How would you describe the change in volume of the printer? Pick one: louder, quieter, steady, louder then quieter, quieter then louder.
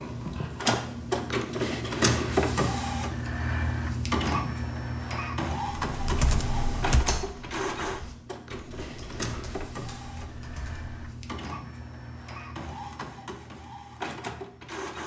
quieter.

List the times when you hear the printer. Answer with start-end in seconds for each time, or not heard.
0.0-15.0.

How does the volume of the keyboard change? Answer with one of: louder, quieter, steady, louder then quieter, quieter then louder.
quieter.